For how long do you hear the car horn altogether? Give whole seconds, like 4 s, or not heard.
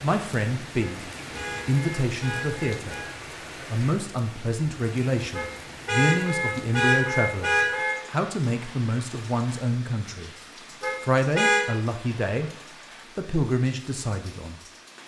6 s.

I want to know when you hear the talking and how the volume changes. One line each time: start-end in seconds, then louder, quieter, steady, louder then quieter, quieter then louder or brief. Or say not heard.
0.0-10.3 steady
11.0-12.6 brief
13.2-14.6 brief.